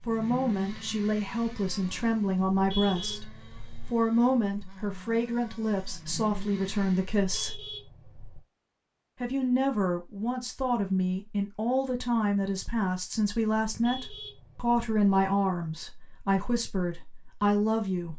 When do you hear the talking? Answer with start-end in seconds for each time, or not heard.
0.1-3.3, 3.9-7.6, 9.2-18.1.